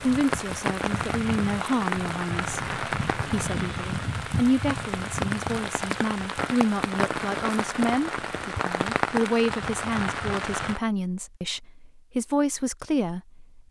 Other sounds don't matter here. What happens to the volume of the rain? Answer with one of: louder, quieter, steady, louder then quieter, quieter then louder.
steady.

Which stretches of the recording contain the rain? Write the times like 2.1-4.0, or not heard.
0.0-10.8.